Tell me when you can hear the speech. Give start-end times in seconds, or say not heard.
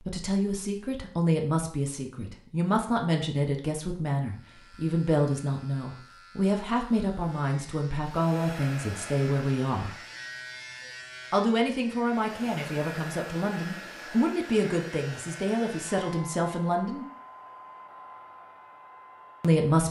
0.1-9.9, 11.3-17.1, 19.4-19.8.